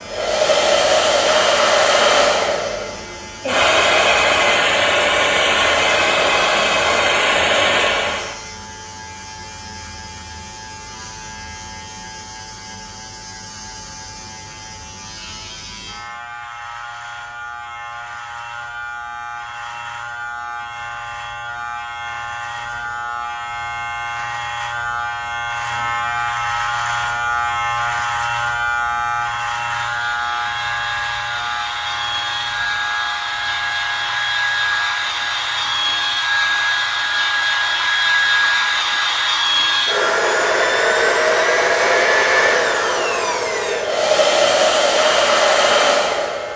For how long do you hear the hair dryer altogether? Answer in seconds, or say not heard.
25 s.